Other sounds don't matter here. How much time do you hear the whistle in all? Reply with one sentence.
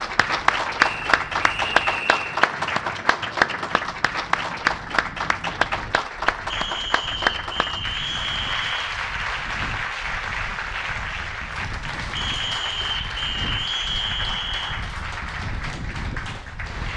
The whistle can be heard for 7 seconds in total.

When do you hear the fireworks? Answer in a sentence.
The fireworks can't be heard in this clip.